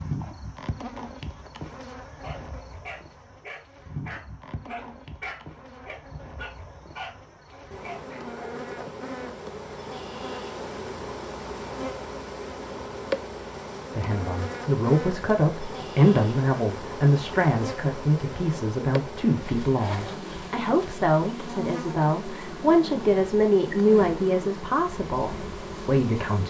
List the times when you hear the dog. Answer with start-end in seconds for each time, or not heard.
2.2-8.9.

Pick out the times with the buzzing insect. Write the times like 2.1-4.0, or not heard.
0.0-26.4.